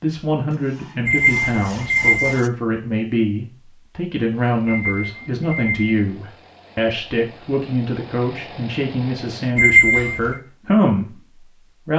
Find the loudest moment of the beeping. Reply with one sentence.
The loudest moment of the beeping is at 10 seconds.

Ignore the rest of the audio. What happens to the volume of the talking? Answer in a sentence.
The loudness of the talking stays about the same.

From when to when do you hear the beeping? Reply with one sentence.
You can hear the beeping from 1.1 to 2.4 s, from 4.7 to 5.8 s and from 9.6 to 10.3 s.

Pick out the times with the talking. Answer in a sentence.
You can hear the talking from 0.0 to 11.9 s.